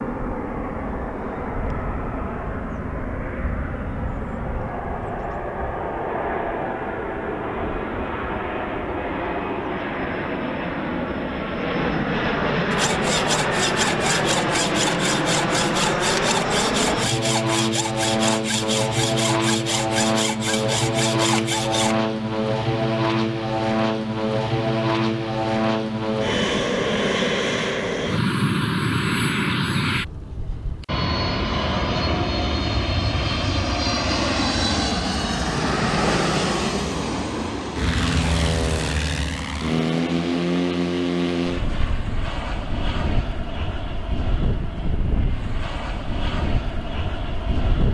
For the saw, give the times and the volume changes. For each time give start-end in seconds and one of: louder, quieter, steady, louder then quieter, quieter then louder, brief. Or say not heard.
12.7-21.9 steady.